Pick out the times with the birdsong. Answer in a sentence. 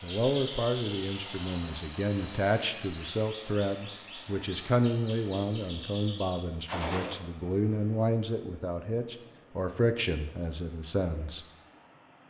The birdsong can be heard from 0.0 to 6.5 s.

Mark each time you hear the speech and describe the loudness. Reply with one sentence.
The speech can be heard from 0.0 to 11.4 s, at a steady volume.